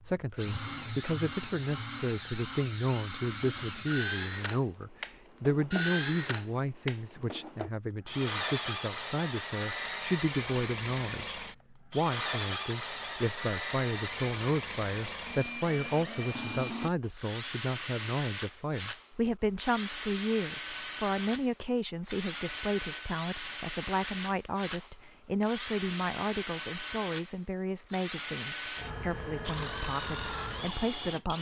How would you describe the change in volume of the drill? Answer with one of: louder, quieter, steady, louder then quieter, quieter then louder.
steady.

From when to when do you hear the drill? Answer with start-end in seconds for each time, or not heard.
0.0-31.3.